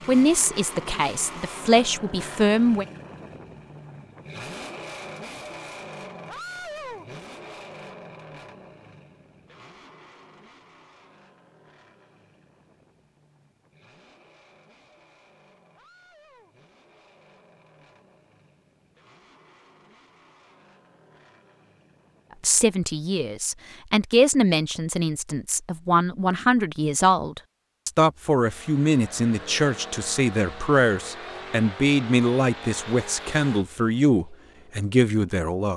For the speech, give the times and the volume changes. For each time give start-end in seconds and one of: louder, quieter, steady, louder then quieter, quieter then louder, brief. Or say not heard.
0.1-2.9 brief
22.4-35.7 steady.